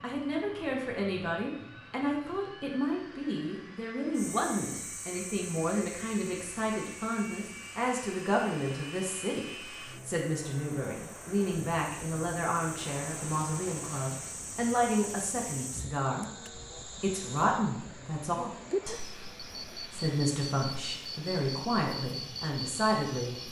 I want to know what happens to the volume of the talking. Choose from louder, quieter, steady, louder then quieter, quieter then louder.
steady.